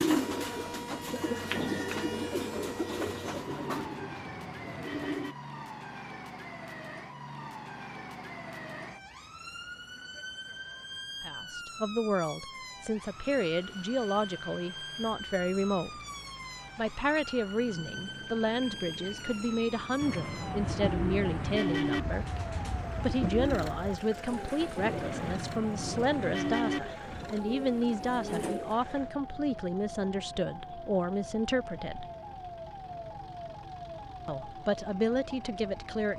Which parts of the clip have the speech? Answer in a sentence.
You can hear the speech from 11.2 to 16.0 s, from 16.8 to 22.4 s, from 23.0 to 32.1 s and from 34.2 to 36.1 s.